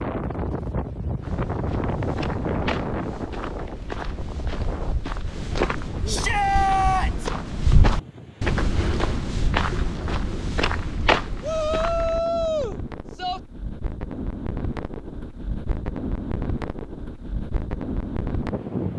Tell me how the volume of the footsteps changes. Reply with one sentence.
The loudness of the footsteps goes up.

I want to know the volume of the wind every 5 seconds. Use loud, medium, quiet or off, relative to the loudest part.
loud, medium, medium, loud.